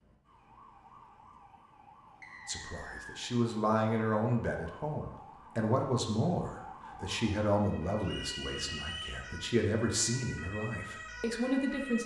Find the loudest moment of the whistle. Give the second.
9 s.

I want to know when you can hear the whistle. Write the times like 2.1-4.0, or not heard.
2.2-3.2, 8.0-9.2.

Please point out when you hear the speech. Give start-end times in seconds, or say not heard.
2.5-12.0.